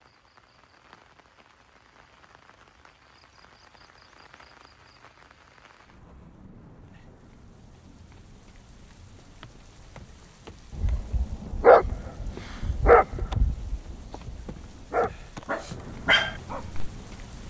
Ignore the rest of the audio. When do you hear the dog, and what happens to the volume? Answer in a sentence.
The dog can be heard from 10.7 to 16.8 s, getting quieter then louder.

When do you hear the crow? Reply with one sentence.
The crow can't be heard in this clip.